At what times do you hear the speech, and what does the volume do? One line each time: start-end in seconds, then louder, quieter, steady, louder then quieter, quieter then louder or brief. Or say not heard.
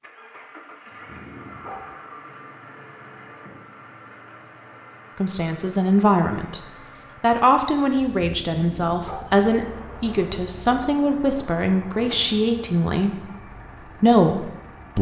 5.2-6.6 brief
7.2-14.9 steady.